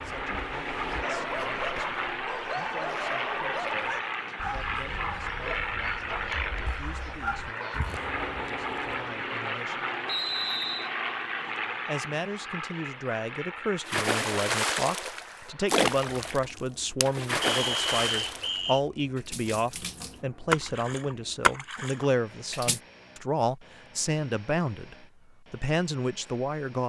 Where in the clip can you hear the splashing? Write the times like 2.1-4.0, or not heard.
13.8-22.8.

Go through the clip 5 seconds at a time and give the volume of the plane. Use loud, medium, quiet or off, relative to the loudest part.
loud, loud, loud, quiet, quiet, quiet.